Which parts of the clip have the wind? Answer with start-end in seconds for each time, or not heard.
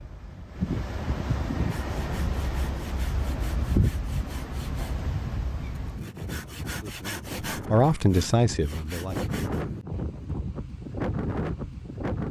0.0-12.2.